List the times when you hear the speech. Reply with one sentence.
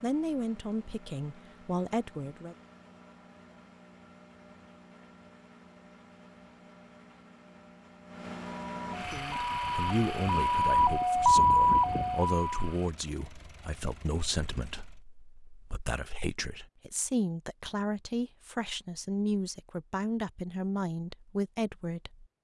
You can hear the speech from 0.0 to 2.5 s and from 8.9 to 22.2 s.